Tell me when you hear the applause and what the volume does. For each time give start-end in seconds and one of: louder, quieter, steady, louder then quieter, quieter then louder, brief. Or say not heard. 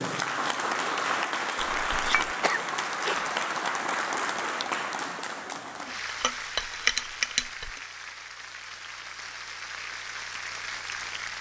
0.0-11.3 quieter.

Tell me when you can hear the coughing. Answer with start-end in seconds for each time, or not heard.
2.4-3.3.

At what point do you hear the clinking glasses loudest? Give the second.
7 s.